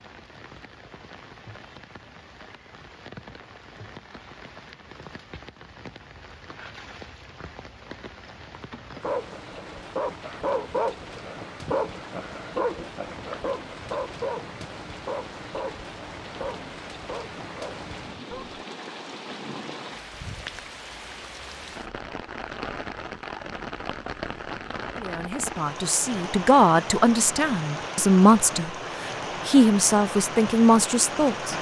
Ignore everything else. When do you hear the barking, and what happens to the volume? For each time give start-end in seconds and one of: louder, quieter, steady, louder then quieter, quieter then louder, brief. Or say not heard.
8.9-18.6 quieter.